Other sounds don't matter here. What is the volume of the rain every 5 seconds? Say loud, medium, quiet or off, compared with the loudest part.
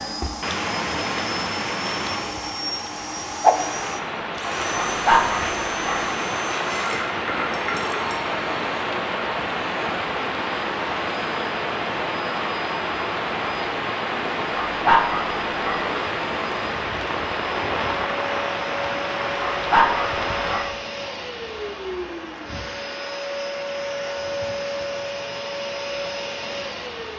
loud, loud, loud, loud, medium, quiet.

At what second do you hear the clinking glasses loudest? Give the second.
7 s.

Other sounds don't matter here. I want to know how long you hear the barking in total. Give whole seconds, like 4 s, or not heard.
4 s.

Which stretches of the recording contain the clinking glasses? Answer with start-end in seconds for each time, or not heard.
6.7-8.2.